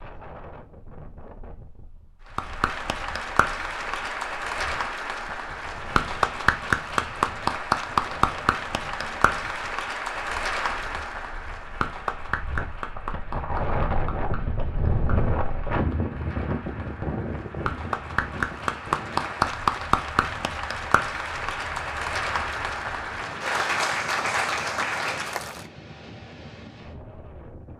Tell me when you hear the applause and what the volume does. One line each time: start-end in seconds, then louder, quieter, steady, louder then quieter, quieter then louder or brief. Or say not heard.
2.4-25.6 quieter then louder.